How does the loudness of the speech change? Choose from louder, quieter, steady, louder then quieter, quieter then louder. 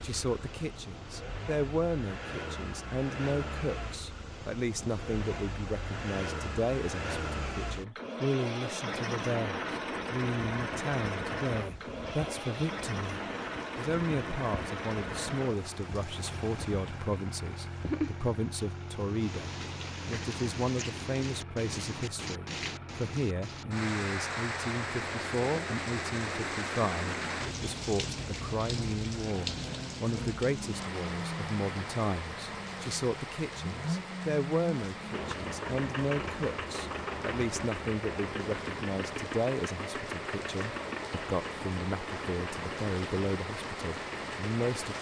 steady.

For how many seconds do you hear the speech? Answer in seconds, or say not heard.
45 s.